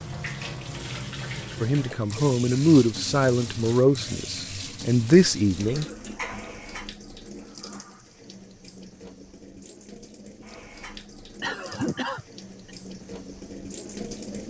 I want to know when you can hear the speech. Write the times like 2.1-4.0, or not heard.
1.6-5.8.